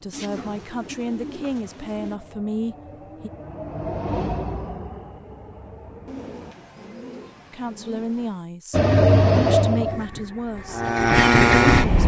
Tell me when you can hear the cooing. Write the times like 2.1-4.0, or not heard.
0.1-2.2, 6.0-8.4.